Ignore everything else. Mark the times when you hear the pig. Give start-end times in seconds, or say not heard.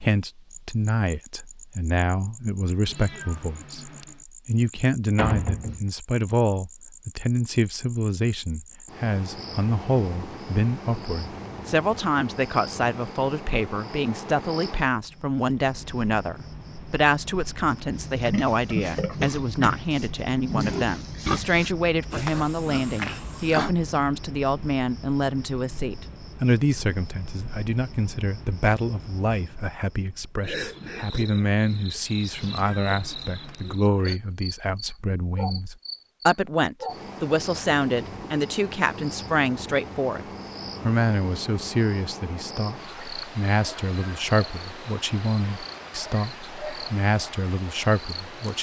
17.9-23.7.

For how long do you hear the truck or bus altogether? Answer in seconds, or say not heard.
not heard.